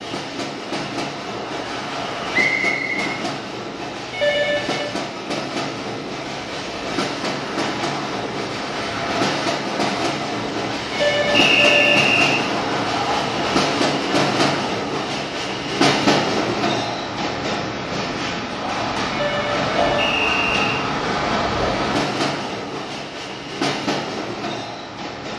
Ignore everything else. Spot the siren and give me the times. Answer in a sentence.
The siren can't be heard in this clip.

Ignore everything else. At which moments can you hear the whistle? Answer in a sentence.
The whistle can be heard from 2.3 to 3.1 s, from 11.3 to 12.4 s and from 19.9 to 20.8 s.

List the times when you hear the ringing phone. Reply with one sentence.
You can hear the ringing phone from 4.1 to 4.9 s, from 10.9 to 12.1 s and from 19.1 to 20.1 s.